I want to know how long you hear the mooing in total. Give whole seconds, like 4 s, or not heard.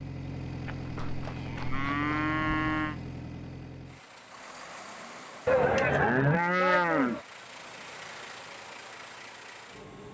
4 s.